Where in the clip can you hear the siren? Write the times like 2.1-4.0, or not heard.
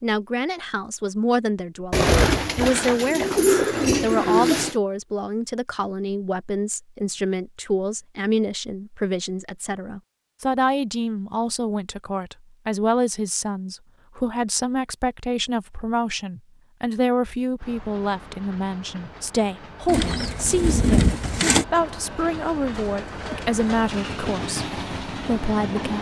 not heard.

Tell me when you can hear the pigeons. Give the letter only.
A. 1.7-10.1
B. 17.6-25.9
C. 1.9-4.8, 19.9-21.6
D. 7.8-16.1
C.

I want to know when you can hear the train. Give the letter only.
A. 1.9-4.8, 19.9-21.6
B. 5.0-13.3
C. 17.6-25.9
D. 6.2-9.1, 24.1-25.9
C.